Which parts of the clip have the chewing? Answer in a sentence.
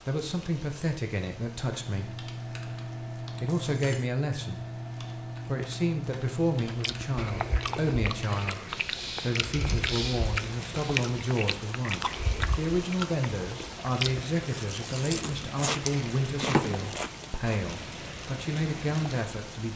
You can hear the chewing from 6.7 to 17.6 s.